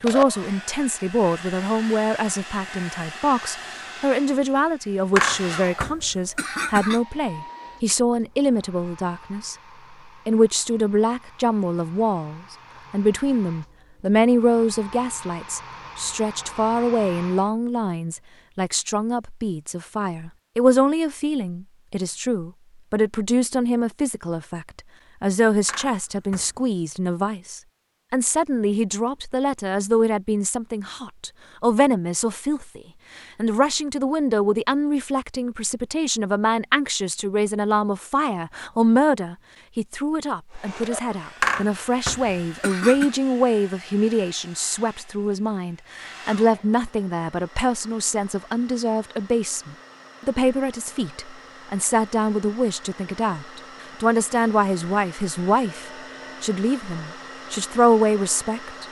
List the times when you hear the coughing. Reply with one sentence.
You can hear the coughing from 5.2 to 7.0 s, from 25.6 to 26.6 s and from 41.4 to 43.1 s.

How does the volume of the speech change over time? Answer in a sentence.
The volume of the speech stays about the same.